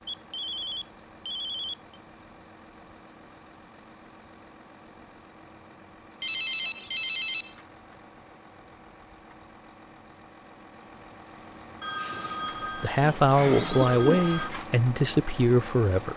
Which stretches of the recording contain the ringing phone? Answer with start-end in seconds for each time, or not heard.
0.1-2.0, 6.2-7.5, 11.8-14.5.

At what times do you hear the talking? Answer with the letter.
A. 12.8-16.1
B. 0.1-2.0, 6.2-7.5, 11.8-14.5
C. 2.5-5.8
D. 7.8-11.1
A.